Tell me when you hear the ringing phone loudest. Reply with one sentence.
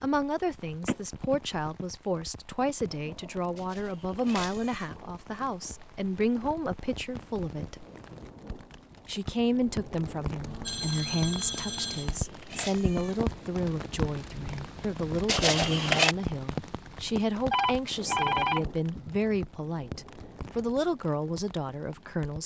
The loudest moment of the ringing phone is at 18 seconds.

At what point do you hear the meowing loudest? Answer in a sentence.
The loudest moment of the meowing is at 16 seconds.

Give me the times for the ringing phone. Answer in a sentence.
The ringing phone can be heard from 0.8 to 1.9 s, from 10.4 to 12.2 s and from 17.5 to 19.4 s.